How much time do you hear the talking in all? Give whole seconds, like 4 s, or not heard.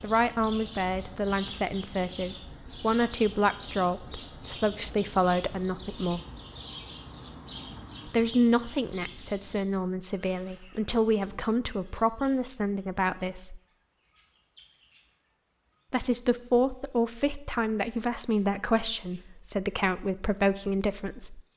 17 s.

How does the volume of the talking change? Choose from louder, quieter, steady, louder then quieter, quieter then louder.
steady.